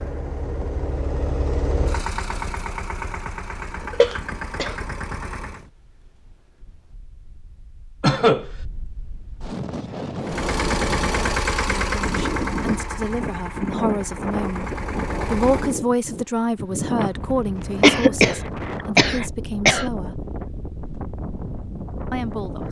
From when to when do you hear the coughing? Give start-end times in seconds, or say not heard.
4.0-4.8, 8.0-8.5, 17.8-19.9.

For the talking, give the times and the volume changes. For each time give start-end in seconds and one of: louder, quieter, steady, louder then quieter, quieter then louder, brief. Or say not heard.
11.7-20.2 louder then quieter
22.1-22.6 brief.